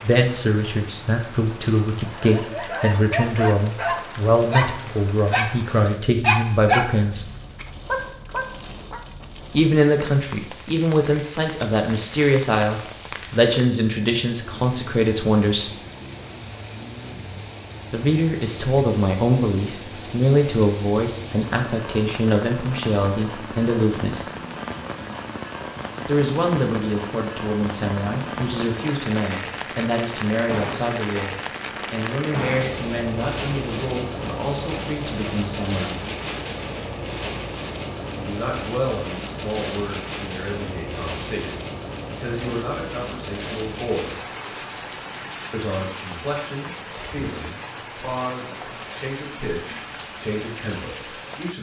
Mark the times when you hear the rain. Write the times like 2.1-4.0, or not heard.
0.0-51.5.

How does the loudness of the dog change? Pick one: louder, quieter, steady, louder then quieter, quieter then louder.
louder then quieter.